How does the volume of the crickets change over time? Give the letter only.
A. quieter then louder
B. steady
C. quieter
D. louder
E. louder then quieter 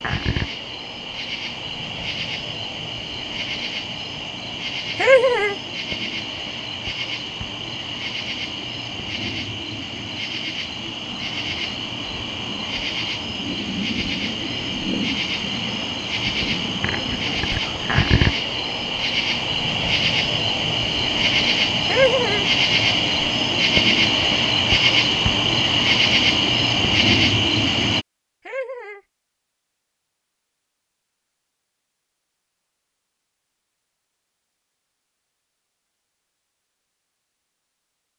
D.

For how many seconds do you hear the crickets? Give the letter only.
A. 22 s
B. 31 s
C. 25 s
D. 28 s
D.